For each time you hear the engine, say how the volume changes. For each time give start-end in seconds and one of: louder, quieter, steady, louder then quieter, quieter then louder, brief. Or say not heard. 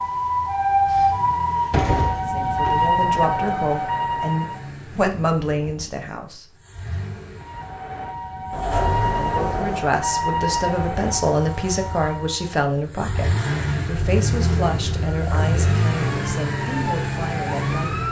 0.0-18.0 louder.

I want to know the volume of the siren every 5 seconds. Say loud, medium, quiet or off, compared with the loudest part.
loud, medium, medium, medium.